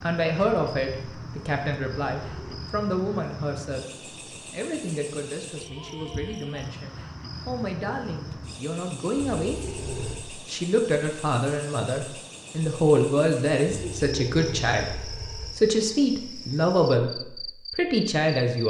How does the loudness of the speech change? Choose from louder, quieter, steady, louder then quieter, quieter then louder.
quieter then louder.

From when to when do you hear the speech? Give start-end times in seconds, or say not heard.
0.0-3.9, 4.5-18.6.